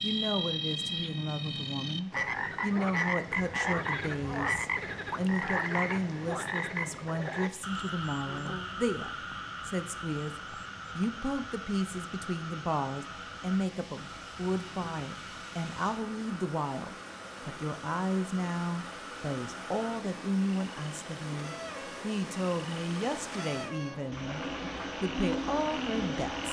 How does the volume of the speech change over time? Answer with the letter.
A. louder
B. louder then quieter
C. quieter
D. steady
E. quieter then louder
D.